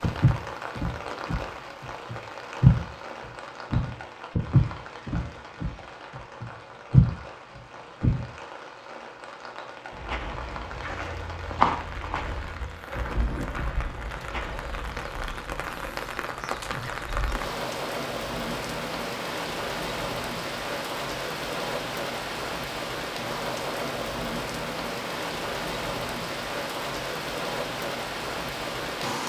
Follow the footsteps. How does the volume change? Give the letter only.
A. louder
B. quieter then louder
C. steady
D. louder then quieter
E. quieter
E.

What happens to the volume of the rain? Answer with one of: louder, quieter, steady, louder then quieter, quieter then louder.
louder.